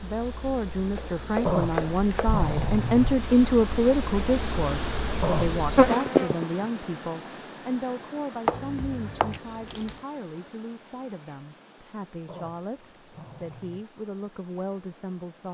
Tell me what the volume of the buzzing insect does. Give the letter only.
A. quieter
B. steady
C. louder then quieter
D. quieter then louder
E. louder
E.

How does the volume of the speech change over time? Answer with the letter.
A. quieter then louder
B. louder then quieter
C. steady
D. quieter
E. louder
D.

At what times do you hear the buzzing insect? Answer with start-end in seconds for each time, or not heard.
0.0-6.5.